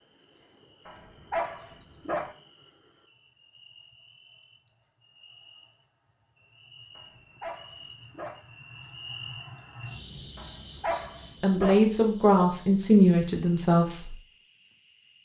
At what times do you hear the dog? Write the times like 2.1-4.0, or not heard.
0.8-2.4, 7.0-8.4, 10.3-11.8.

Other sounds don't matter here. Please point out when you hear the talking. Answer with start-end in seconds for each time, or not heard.
11.4-14.2.